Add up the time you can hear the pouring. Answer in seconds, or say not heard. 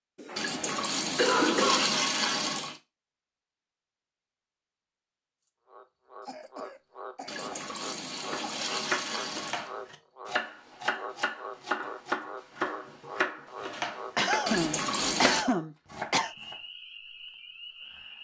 6 s.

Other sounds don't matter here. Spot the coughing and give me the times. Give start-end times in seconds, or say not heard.
0.1-2.0, 6.2-8.7, 14.2-16.3.